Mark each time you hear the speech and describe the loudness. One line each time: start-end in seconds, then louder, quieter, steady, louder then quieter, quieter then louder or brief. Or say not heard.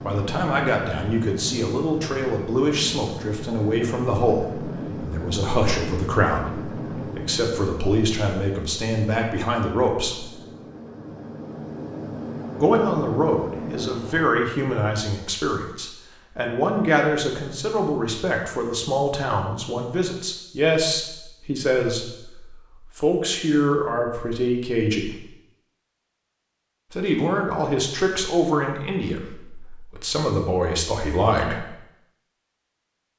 0.1-10.3 steady
12.6-25.1 steady
26.9-31.6 quieter then louder.